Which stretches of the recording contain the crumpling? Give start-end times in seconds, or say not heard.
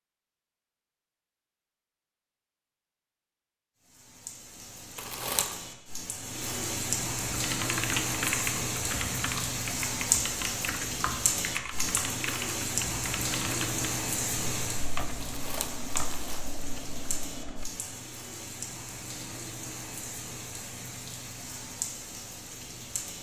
5.0-5.6, 15.2-16.4.